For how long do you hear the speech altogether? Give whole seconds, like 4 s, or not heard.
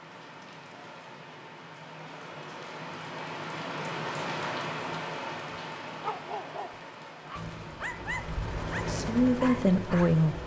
2 s.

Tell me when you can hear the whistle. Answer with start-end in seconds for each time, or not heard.
not heard.